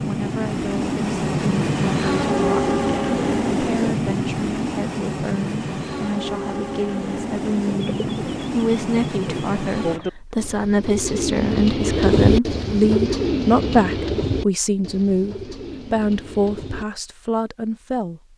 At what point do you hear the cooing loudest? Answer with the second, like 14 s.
12 s.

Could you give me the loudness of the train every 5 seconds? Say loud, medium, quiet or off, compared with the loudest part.
loud, medium, off, off.